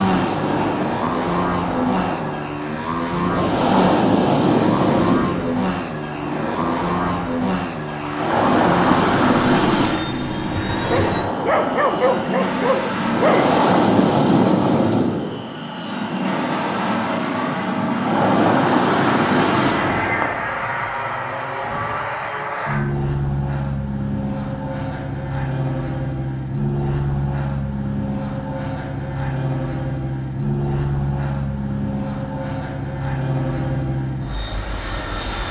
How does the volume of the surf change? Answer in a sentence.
The volume of the surf stays about the same.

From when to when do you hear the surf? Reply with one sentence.
You can hear the surf from 0.0 to 20.4 s.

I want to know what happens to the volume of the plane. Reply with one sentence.
The volume of the plane stays about the same.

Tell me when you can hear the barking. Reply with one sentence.
You can hear the barking from 10.8 to 13.6 s.